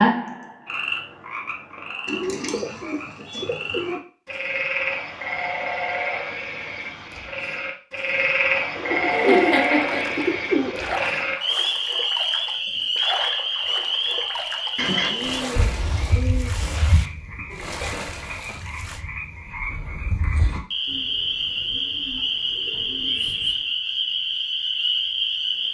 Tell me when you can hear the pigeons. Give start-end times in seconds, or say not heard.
2.0-4.0, 8.8-11.0, 14.8-16.8, 20.9-23.6.